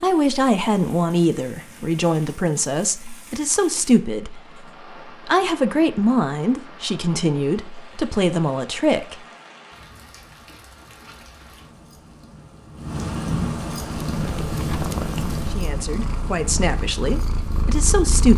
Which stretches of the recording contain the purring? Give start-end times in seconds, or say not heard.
13.7-18.3.